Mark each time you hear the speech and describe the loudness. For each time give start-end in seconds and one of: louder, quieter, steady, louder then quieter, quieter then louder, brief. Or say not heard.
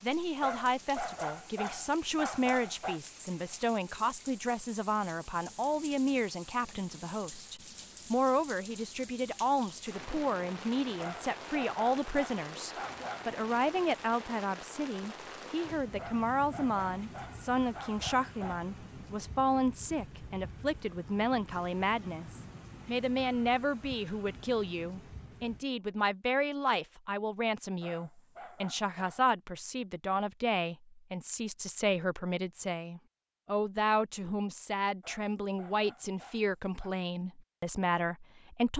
0.0-38.7 steady.